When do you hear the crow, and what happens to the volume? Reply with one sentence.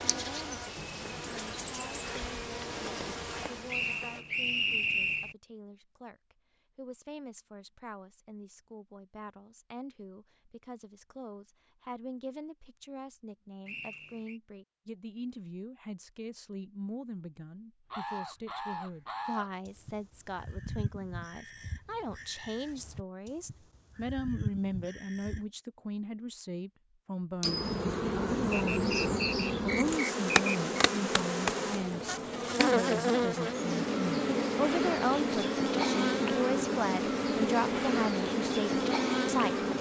The crow can be heard from 17.9 to 25.4 s, getting quieter then louder.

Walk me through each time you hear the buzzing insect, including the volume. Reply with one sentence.
The buzzing insect can be heard from 0.0 to 4.2 s, at a steady volume; and from 27.4 to 39.7 s, at a steady volume.